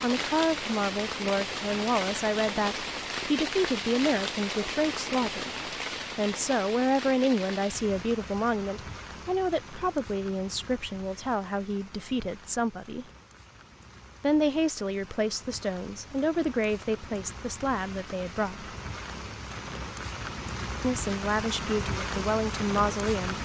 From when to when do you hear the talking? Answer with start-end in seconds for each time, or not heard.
0.0-5.5, 6.2-13.1, 14.2-18.7, 20.8-23.4.